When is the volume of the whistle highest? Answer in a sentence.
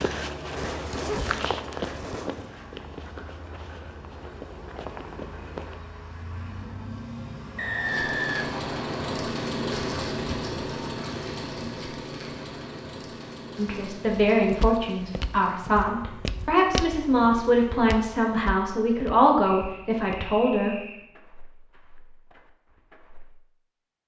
The volume of the whistle peaks at 8 seconds.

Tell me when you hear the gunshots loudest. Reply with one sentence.
The loudest moment of the gunshots is at 1 second.